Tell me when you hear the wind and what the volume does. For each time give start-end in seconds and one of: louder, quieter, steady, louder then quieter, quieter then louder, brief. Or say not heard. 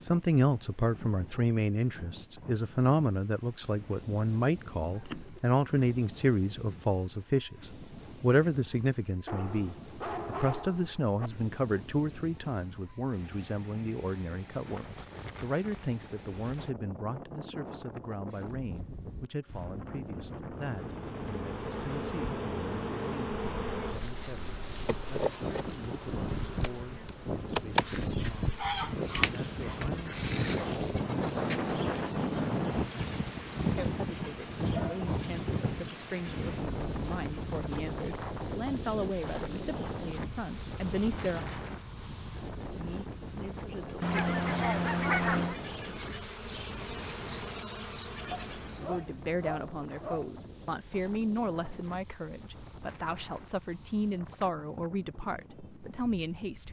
0.0-56.6 louder then quieter.